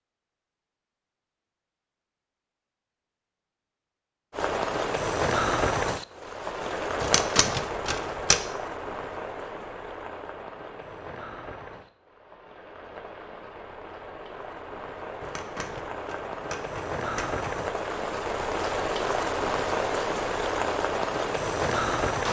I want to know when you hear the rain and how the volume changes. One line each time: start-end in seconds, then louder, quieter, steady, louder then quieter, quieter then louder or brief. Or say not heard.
4.3-22.2 quieter then louder.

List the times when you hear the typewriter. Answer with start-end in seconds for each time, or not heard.
7.0-8.4, 15.2-17.4.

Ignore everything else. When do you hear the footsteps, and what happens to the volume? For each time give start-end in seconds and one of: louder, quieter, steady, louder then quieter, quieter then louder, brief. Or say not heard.
not heard.